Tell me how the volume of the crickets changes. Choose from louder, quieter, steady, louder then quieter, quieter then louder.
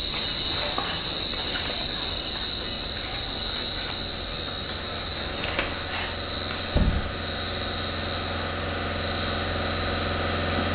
quieter.